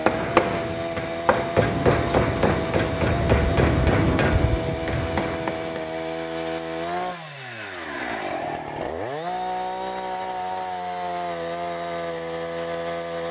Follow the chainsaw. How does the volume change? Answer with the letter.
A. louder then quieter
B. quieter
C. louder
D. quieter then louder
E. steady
E.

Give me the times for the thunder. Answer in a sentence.
You can hear the thunder from 1.6 to 5.3 s.